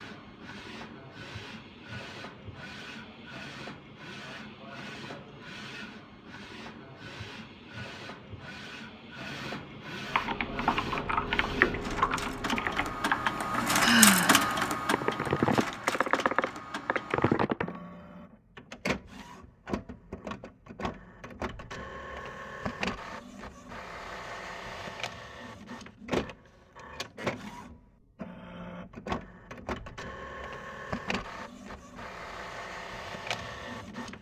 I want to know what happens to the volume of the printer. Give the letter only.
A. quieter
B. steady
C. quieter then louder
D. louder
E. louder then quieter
E.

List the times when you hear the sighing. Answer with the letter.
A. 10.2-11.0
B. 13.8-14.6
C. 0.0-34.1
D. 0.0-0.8
B.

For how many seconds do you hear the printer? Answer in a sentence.
You can hear the printer for 34 seconds altogether.